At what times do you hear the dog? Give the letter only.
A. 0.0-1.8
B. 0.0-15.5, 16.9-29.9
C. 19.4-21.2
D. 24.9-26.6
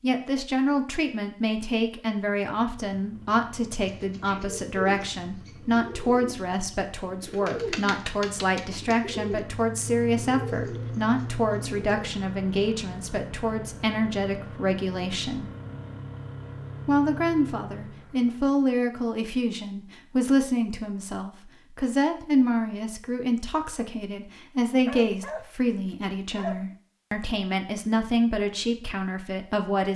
D.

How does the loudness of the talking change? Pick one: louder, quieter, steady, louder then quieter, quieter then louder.
steady.